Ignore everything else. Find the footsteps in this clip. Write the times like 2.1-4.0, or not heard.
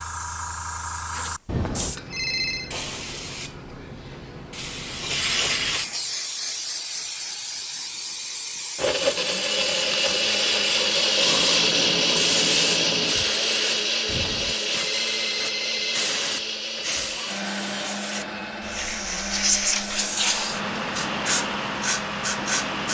not heard.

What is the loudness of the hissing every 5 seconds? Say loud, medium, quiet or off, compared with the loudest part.
medium, loud, loud, loud, loud.